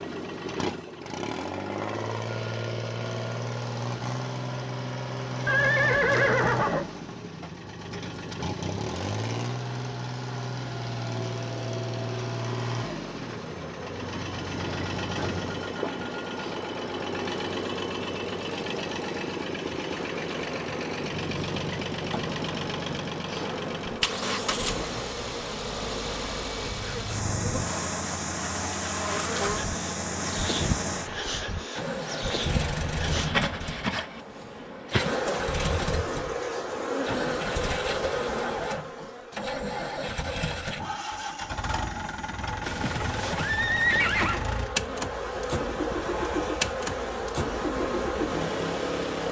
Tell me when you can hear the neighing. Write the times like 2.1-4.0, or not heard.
5.5-6.8, 42.6-44.5.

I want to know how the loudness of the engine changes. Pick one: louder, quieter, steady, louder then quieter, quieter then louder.
steady.